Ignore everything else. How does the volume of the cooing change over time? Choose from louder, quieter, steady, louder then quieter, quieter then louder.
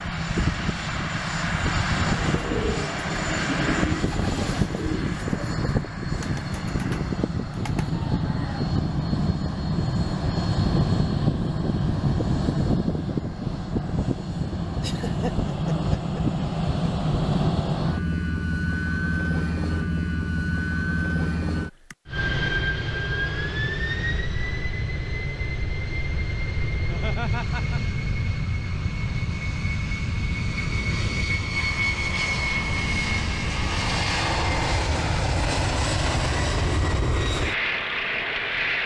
quieter.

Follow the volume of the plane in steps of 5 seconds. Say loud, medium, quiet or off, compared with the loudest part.
loud, loud, loud, loud, loud, medium, loud, loud.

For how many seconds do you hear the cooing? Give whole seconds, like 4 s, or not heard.
6 s.